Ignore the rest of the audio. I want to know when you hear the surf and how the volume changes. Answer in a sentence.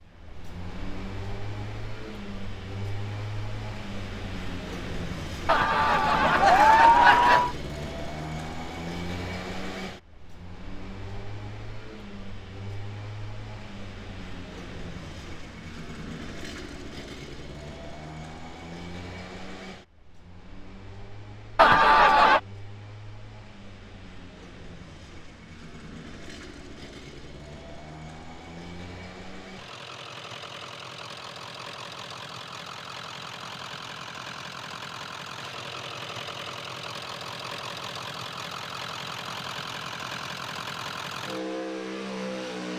The surf can't be heard in this clip.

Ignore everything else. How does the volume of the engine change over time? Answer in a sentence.
The loudness of the engine goes down, then up.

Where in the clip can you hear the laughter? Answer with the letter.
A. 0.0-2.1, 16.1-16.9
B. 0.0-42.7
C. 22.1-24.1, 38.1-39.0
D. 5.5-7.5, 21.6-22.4
D.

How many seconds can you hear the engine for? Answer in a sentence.
You can hear the engine for 43 seconds altogether.